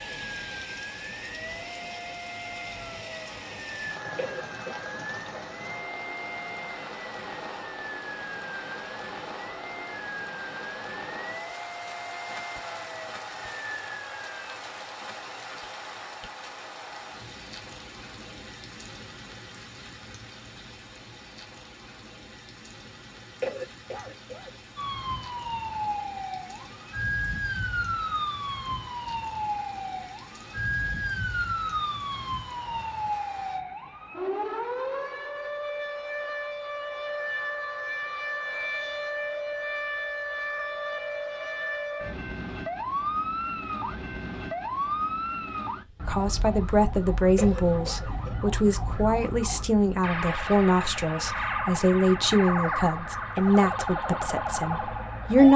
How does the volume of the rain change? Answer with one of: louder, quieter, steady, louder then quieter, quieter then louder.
quieter.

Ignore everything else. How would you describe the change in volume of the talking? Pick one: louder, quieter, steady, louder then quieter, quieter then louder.
steady.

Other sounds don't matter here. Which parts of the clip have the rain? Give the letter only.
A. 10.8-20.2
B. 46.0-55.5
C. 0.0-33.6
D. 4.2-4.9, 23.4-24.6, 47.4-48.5
C.